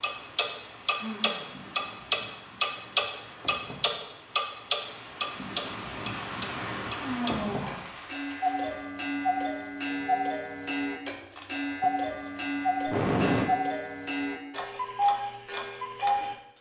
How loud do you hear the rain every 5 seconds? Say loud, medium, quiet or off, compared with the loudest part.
medium, loud, off, off.